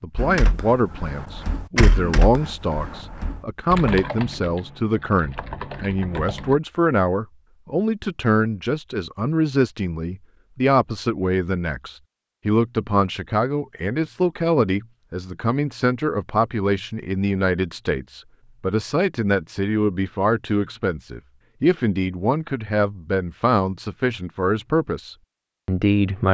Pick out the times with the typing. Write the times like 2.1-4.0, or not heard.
0.1-6.6.